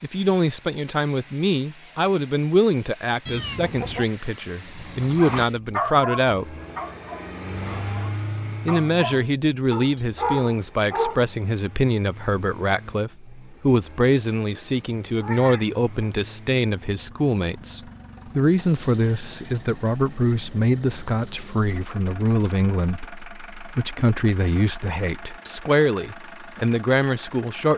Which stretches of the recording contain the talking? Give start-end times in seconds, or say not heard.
0.0-6.5, 8.7-27.7.